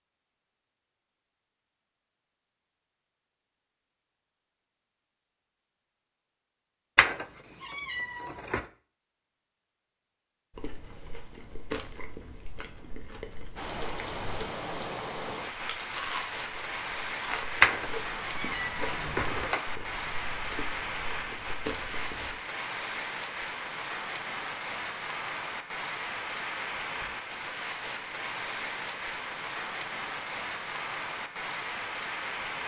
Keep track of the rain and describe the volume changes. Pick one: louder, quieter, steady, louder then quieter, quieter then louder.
steady.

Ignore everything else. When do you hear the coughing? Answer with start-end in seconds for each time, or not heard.
not heard.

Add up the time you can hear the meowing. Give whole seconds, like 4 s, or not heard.
4 s.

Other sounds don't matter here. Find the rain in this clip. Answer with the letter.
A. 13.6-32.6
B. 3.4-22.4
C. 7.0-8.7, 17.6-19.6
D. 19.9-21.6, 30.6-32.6
A.